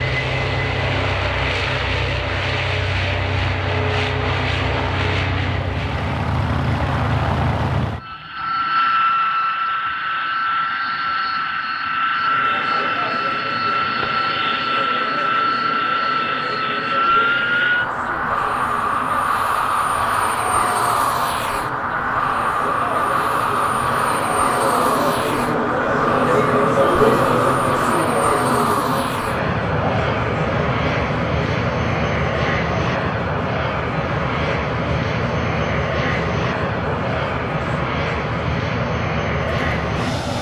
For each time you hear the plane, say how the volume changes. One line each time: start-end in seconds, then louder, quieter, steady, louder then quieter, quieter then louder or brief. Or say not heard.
0.0-40.3 steady.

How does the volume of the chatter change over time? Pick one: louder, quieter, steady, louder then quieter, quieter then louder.
louder then quieter.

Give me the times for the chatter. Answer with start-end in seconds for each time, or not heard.
12.1-40.3.